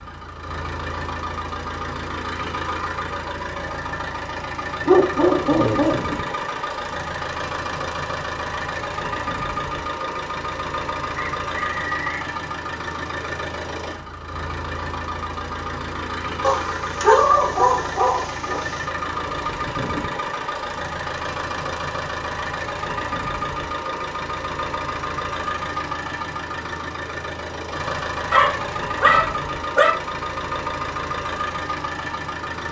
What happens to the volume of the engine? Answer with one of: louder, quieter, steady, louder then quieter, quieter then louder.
steady.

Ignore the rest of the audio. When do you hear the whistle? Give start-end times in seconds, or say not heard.
11.2-12.2.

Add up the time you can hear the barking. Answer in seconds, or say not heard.
5 s.